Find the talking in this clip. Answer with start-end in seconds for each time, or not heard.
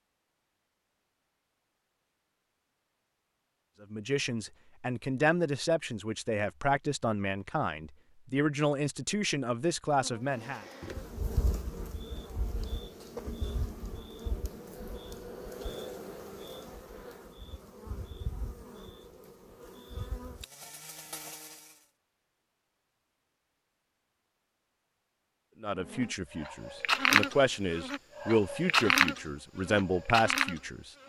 3.8-10.7, 25.6-30.9.